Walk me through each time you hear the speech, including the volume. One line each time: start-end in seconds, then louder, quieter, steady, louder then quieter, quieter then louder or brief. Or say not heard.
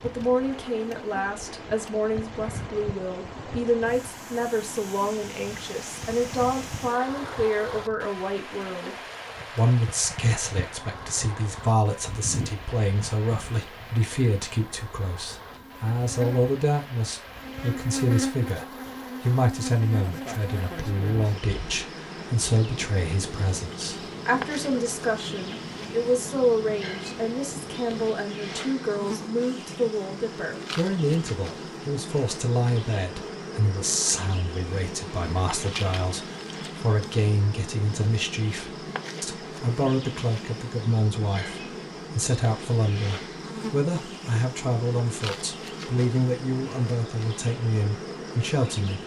0.0-49.0 steady.